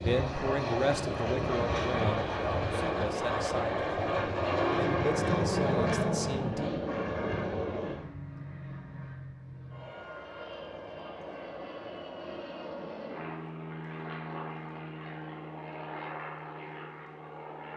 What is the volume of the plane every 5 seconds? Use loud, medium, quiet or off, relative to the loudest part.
loud, loud, medium, medium.